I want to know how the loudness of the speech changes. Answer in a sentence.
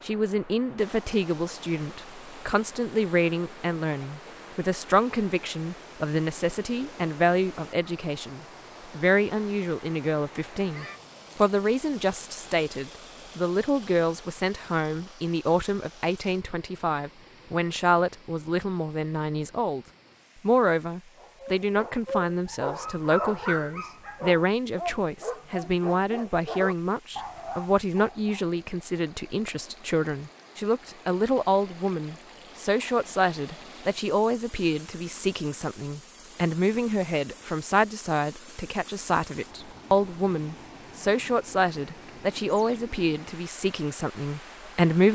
The volume of the speech stays about the same.